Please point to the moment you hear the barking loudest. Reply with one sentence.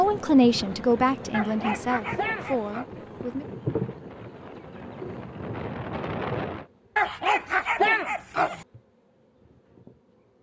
The volume of the barking peaks at 8 seconds.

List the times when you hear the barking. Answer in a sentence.
You can hear the barking from 1.3 to 2.9 s and from 7.0 to 8.7 s.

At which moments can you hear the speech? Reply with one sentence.
You can hear the speech from 0.0 to 3.5 s.